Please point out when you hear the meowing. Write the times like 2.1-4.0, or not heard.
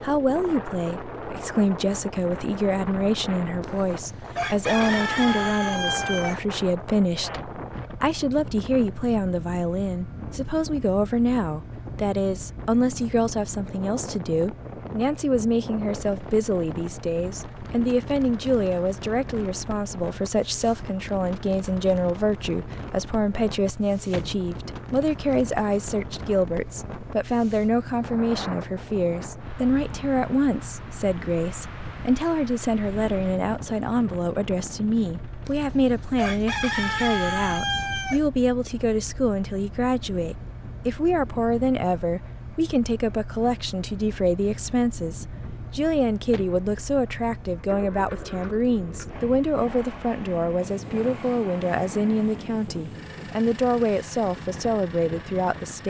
not heard.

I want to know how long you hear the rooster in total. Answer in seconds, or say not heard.
6 s.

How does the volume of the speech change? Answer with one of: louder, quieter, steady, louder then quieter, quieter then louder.
steady.